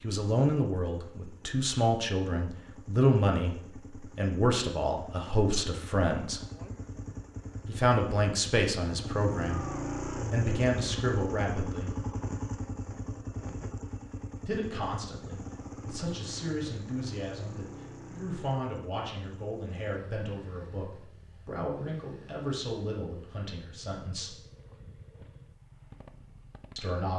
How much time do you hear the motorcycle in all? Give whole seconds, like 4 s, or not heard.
27 s.